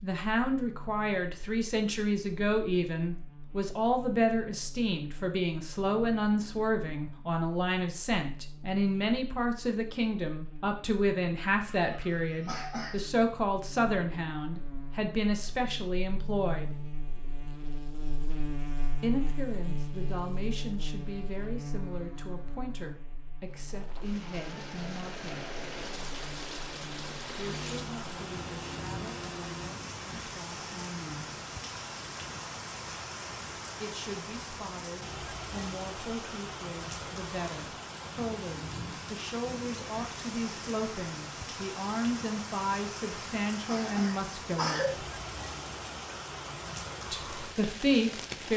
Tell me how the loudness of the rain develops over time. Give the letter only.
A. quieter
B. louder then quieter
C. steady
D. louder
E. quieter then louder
C.